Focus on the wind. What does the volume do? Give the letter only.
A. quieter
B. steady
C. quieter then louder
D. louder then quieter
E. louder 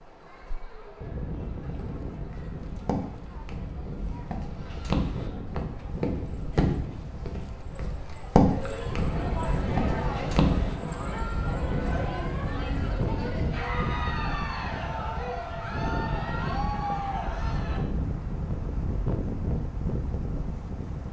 E.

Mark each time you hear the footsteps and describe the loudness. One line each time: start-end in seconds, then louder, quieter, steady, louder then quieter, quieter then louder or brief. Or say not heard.
1.8-10.8 louder then quieter.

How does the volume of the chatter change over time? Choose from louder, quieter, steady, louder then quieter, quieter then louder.
louder.